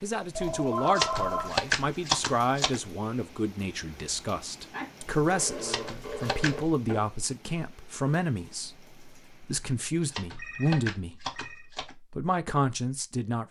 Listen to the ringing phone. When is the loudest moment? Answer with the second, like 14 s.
1 s.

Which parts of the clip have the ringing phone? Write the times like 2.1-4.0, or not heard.
0.3-1.5, 4.7-7.0, 10.3-11.7.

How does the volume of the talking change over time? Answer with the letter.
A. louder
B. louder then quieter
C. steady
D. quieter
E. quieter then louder
C.